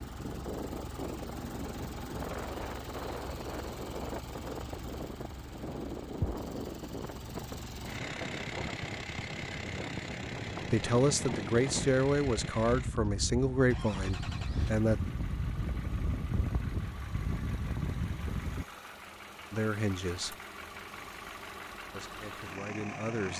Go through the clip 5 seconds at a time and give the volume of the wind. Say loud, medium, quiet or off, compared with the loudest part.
loud, loud, loud, loud, off.